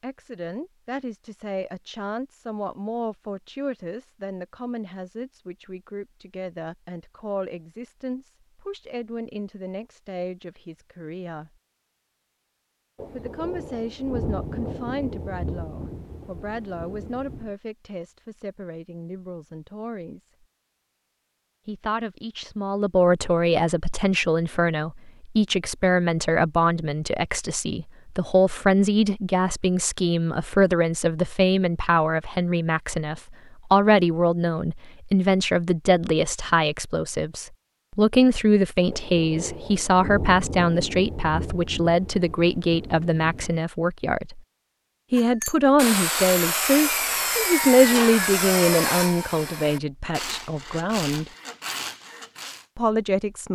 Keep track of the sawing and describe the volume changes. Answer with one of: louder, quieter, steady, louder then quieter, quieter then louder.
quieter.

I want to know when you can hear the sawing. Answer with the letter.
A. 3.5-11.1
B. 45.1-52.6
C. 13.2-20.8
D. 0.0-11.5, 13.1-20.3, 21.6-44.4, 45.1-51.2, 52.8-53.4
B.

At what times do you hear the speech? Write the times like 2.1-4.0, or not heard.
0.0-11.5, 13.1-20.3, 21.6-44.4, 45.1-51.2, 52.8-53.4.